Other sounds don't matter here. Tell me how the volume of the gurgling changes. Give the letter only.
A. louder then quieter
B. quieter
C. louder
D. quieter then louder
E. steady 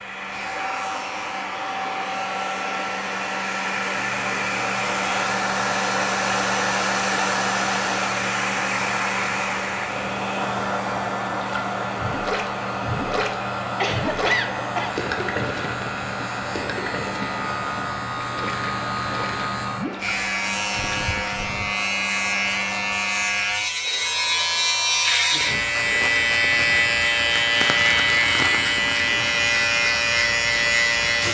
B.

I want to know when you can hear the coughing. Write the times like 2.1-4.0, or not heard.
13.7-15.0.